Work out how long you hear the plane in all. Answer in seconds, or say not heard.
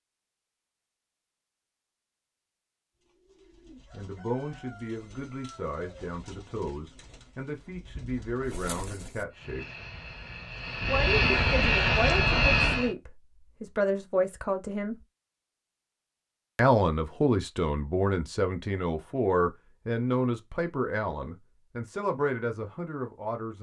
4 s.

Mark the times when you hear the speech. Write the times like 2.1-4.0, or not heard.
3.9-9.7, 10.8-14.9, 16.6-23.5.